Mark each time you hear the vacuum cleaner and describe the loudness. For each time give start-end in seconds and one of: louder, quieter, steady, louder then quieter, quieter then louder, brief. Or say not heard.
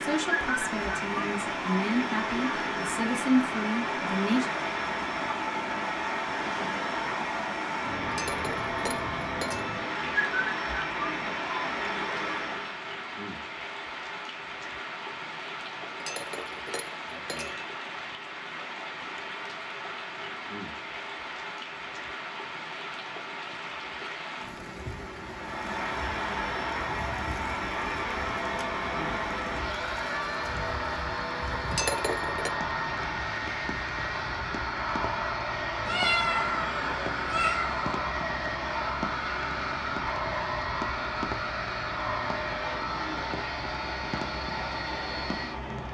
0.0-12.8 steady
25.2-45.8 steady.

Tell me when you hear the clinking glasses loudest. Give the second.
32 s.